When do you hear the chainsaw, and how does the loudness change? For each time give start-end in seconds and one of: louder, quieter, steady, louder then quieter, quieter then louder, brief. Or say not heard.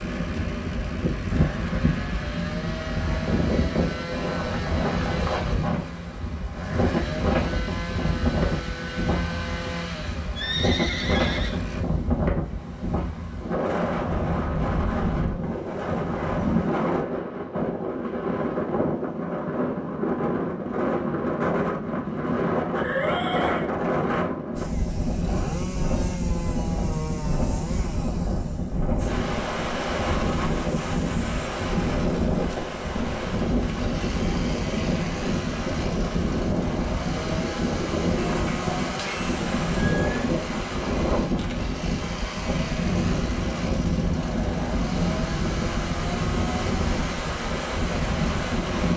0.0-11.8 steady
24.6-48.9 steady.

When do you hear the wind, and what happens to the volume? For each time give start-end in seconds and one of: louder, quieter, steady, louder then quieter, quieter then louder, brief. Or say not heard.
0.0-48.9 steady.